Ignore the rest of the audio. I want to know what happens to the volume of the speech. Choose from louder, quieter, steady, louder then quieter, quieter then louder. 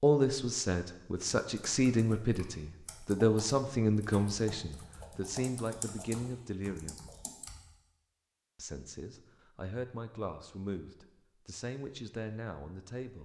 quieter.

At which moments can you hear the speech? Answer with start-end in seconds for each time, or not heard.
0.0-7.0, 8.6-13.1.